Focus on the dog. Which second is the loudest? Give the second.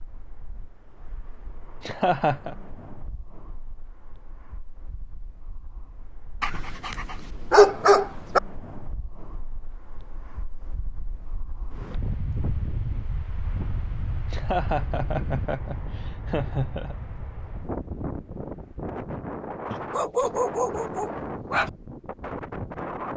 8 s.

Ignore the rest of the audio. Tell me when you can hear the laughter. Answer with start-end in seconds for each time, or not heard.
1.8-2.5, 14.3-16.9.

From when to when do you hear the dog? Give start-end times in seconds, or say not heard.
6.4-8.4, 19.7-21.7.